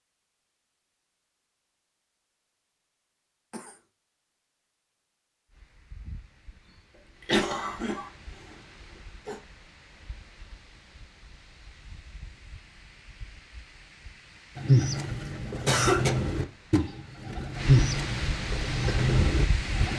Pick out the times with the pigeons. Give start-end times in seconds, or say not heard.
14.6-19.9.